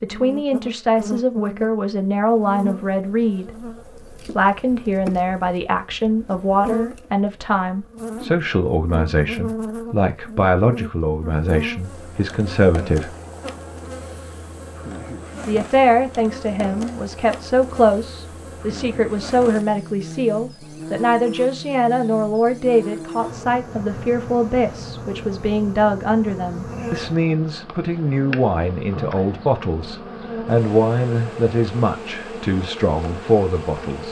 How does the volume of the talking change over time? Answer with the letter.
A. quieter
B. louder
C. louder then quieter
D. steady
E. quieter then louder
D.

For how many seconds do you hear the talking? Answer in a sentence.
The talking can be heard for 32 seconds in total.